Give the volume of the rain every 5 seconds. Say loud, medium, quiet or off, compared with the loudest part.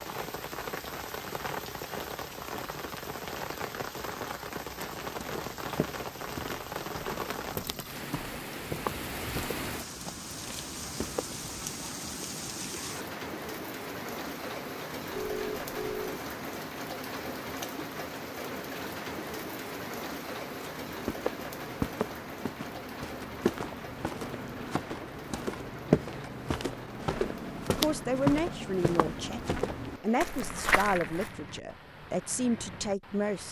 loud, loud, loud, loud, loud, medium, medium.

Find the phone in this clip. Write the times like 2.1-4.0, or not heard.
15.2-16.2.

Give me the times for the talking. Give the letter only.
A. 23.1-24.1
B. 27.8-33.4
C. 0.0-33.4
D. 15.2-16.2
B.